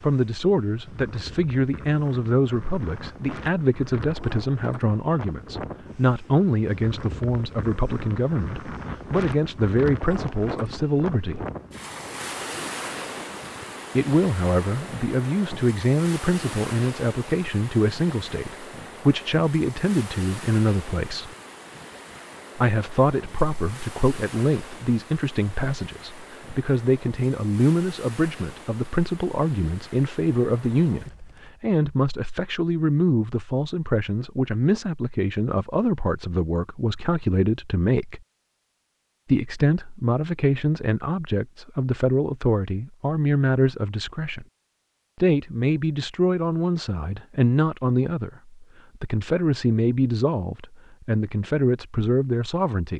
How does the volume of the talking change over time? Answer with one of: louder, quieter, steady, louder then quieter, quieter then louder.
steady.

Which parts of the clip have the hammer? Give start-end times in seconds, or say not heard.
not heard.